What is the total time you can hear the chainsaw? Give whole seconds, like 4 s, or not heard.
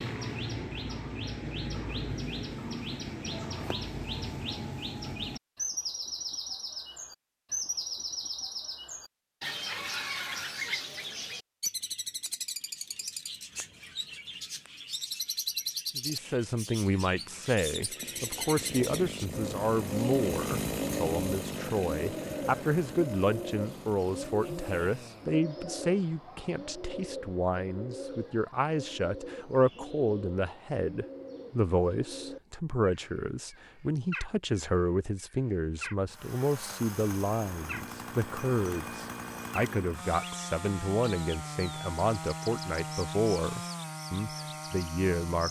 17 s.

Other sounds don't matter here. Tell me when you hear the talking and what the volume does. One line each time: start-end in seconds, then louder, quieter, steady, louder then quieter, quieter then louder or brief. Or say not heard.
15.9-45.4 steady.